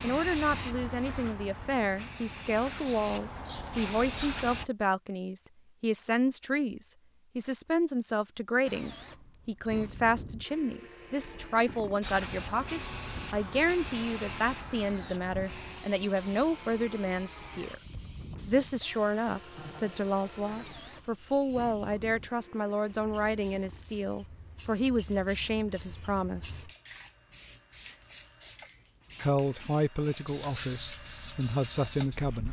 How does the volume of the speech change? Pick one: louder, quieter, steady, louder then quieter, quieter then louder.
steady.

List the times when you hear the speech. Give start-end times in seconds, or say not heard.
0.0-17.8, 18.4-26.7, 29.1-32.4.